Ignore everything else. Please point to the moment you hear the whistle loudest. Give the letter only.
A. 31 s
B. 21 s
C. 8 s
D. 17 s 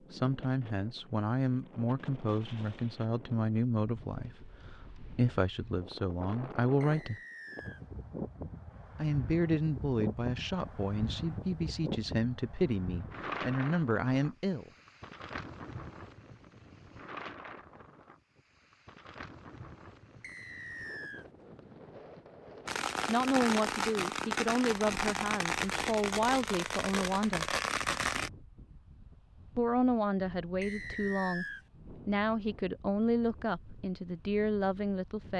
A.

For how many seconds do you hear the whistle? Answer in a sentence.
The whistle can be heard for 3 seconds in total.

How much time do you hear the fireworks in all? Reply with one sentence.
The fireworks can be heard for 6 seconds in total.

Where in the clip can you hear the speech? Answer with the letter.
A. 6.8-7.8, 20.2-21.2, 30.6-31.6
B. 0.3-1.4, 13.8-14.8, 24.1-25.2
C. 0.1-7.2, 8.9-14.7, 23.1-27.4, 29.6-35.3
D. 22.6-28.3
C.